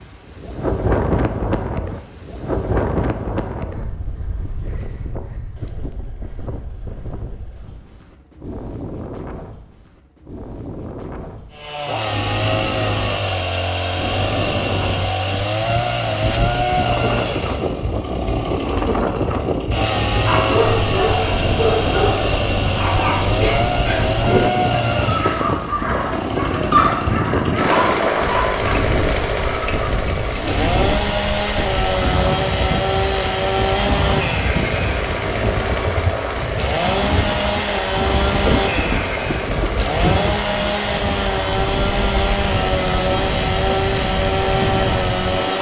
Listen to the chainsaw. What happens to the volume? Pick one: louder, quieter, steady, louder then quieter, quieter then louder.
steady.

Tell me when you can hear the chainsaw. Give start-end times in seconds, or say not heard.
11.5-45.5.